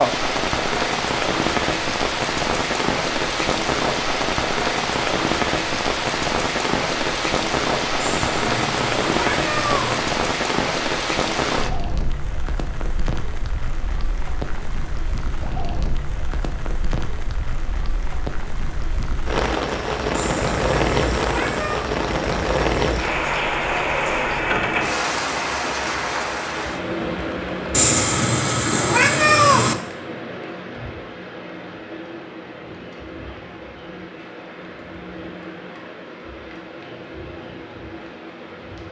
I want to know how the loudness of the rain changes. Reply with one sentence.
The volume of the rain goes down.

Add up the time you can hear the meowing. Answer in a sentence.
The meowing can be heard for 6 seconds in total.